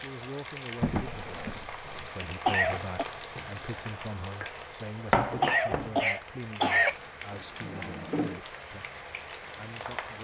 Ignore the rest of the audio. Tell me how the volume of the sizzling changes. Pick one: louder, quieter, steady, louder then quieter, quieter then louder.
louder then quieter.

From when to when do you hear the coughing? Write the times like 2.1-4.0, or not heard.
2.5-3.0, 5.4-7.0.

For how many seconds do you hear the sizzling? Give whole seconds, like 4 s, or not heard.
10 s.